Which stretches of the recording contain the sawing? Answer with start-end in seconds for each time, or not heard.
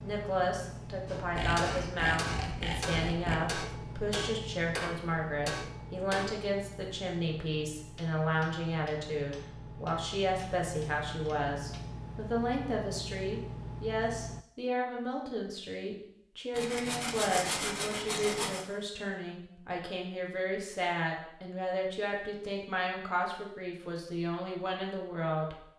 1.4-3.4, 16.5-18.6.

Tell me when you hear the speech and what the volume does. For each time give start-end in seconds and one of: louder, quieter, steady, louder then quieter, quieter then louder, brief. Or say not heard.
0.0-25.6 steady.